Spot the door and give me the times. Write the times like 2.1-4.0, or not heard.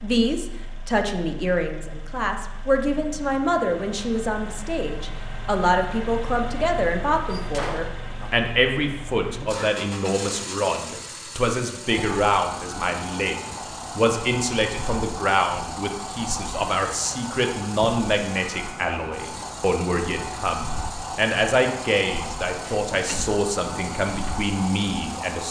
7.3-8.3, 22.6-23.4.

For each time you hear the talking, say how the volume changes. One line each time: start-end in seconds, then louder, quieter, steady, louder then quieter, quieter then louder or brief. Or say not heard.
0.0-25.4 steady.